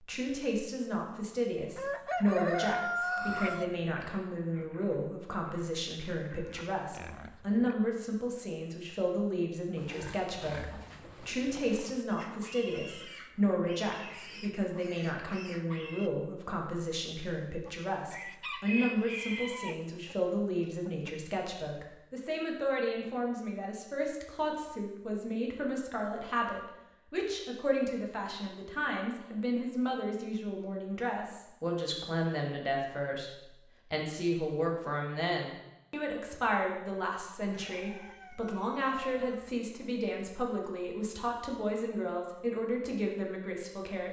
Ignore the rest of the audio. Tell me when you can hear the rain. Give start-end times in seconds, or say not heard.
not heard.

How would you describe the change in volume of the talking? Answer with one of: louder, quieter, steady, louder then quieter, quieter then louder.
steady.